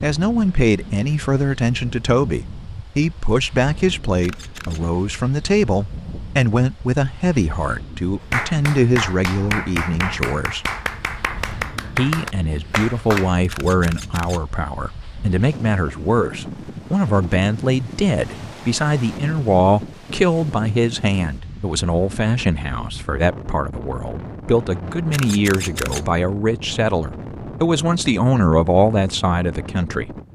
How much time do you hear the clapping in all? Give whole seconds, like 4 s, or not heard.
5 s.